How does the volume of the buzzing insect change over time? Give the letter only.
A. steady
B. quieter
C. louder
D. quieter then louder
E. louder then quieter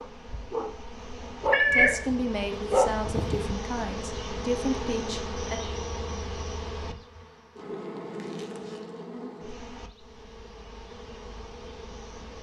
E.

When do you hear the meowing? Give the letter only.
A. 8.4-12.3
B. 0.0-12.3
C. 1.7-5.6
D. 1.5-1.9
D.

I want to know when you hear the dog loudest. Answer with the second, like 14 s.
3 s.